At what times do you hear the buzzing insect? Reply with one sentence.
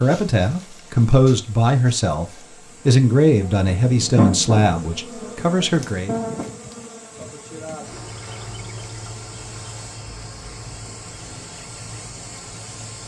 The buzzing insect can be heard from 0.0 to 13.0 s.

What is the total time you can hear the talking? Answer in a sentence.
The talking can be heard for 6 seconds in total.